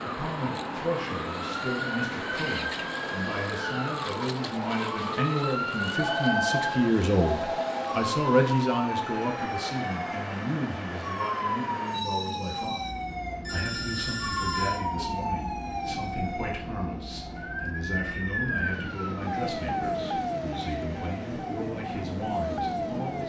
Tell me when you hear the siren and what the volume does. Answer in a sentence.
The siren can be heard from 0.0 to 23.2 s, at a steady volume.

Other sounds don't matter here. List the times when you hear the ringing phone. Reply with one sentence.
The ringing phone can be heard from 6.0 to 8.0 s and from 13.4 to 14.8 s.